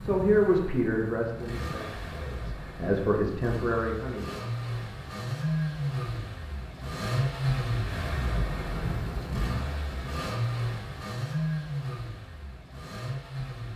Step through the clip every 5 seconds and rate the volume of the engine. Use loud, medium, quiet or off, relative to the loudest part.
medium, loud, loud.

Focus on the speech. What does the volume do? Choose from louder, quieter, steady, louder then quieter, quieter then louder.
quieter then louder.